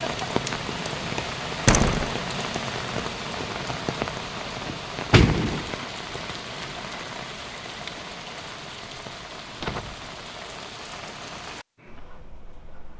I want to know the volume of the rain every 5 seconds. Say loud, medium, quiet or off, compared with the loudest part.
loud, medium, medium.